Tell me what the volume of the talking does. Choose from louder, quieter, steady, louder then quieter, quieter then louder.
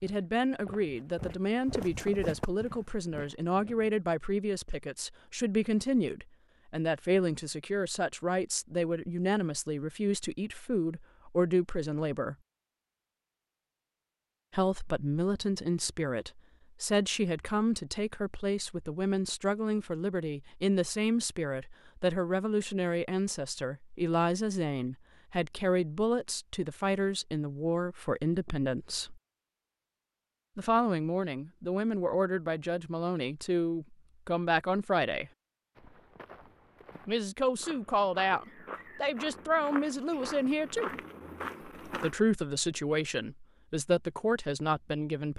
steady.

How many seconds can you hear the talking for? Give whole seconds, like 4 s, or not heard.
39 s.